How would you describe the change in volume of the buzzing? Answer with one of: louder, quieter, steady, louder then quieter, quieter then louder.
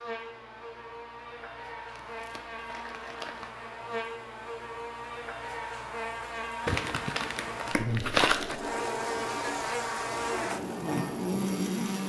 louder.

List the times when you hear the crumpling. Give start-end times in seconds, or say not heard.
1.9-3.5, 6.7-8.6.